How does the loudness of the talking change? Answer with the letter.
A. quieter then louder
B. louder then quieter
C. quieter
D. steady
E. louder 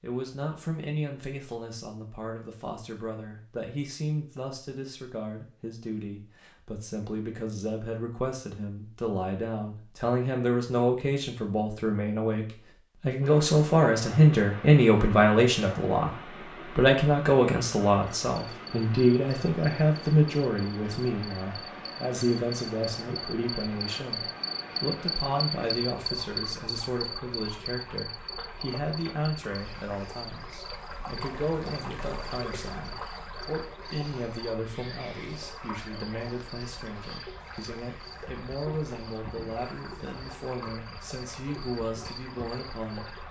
B.